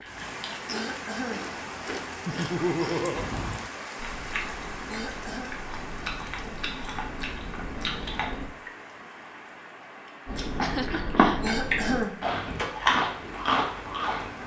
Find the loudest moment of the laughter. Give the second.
3 s.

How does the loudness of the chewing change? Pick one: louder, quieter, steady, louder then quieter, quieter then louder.
louder.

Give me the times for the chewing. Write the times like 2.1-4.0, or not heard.
0.0-8.4, 10.2-14.4.